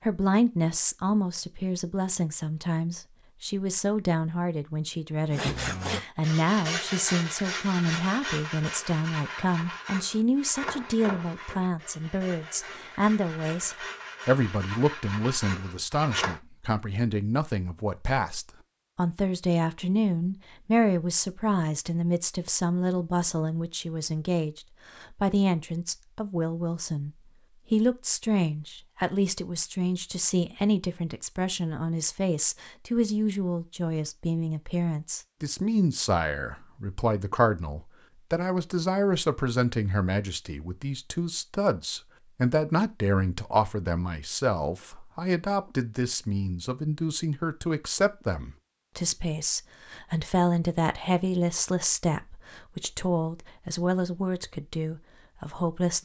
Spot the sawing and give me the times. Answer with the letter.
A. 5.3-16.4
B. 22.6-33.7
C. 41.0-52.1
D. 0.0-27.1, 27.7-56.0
A.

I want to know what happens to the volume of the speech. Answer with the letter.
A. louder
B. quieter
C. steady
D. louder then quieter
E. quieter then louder
C.